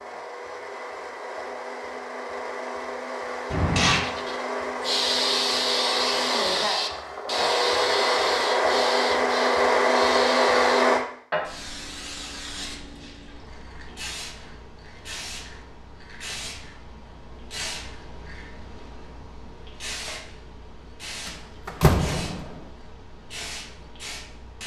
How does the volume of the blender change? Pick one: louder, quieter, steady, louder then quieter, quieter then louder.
louder.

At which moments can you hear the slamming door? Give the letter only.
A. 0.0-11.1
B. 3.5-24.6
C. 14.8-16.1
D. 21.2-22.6
D.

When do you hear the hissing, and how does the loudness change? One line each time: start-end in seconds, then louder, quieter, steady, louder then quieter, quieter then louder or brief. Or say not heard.
3.5-24.6 quieter.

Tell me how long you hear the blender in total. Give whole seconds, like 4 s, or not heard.
11 s.